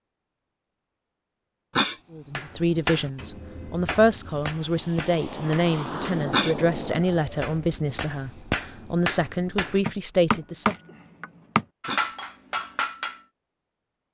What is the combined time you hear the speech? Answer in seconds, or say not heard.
9 s.